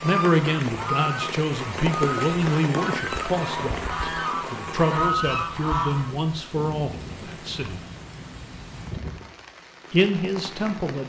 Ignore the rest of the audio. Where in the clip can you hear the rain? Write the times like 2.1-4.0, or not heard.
0.0-11.0.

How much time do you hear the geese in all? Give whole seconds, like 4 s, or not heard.
6 s.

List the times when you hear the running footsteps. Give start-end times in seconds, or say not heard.
not heard.